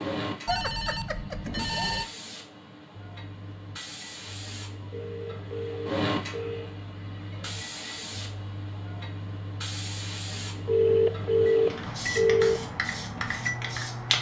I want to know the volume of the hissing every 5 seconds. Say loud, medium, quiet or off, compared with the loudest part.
medium, loud, loud.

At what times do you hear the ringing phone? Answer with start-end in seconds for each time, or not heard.
0.5-2.0, 4.9-6.8, 10.7-12.6.